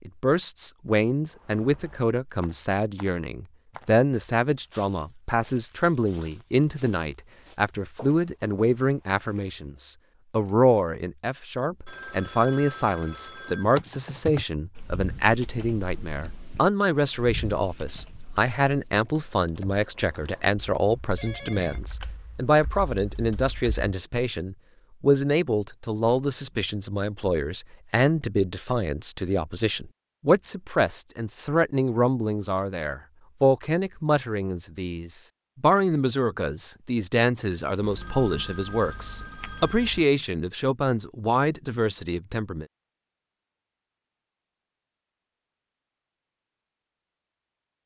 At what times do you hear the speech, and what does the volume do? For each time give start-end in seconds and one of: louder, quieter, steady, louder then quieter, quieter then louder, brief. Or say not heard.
0.1-42.6 steady.